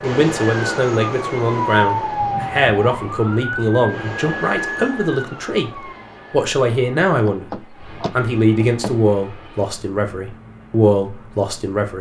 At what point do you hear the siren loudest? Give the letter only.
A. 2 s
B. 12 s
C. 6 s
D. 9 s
A.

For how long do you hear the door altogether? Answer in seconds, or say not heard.
2 s.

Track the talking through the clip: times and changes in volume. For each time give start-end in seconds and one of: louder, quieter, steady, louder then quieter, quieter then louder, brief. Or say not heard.
0.0-11.9 steady.